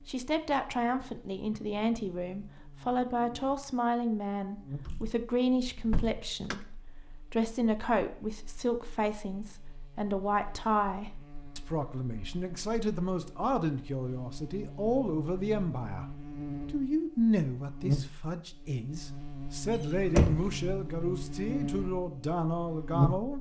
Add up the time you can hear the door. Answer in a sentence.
You can hear the door for 2 seconds altogether.